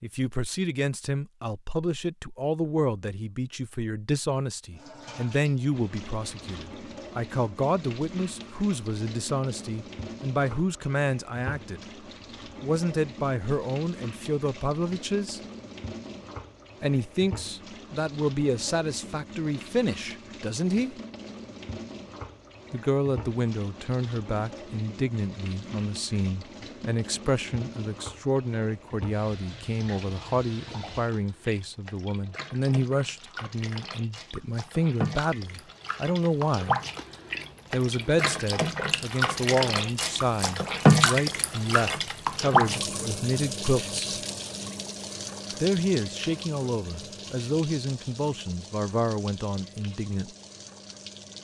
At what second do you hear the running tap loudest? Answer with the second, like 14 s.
41 s.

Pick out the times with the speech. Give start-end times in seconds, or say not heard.
0.0-11.8, 12.6-15.4, 16.8-20.9, 22.7-36.8, 37.7-44.2, 45.6-50.3.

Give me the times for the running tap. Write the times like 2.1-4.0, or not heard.
4.8-51.3.